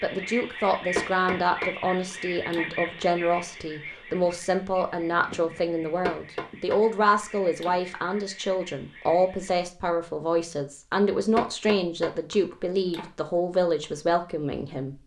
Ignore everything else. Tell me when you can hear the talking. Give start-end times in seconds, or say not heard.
0.0-15.0.